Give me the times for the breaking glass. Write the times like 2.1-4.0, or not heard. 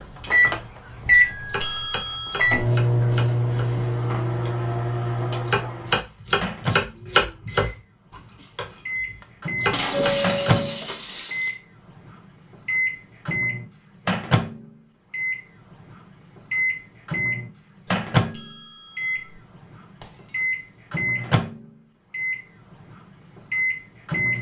0.2-0.8, 9.7-11.6, 20.0-20.8.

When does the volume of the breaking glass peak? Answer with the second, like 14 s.
10 s.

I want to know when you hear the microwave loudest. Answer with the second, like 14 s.
1 s.